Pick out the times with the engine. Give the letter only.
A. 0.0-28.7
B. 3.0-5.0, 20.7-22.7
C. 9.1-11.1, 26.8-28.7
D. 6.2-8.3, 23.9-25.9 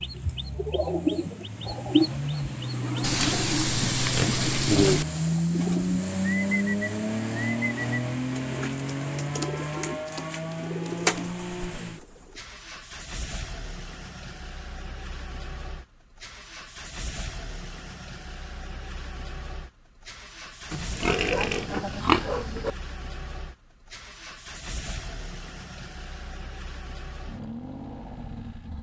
A.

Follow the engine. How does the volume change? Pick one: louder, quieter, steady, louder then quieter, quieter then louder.
quieter.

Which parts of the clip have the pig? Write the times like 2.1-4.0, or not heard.
3.0-5.0, 20.7-22.7.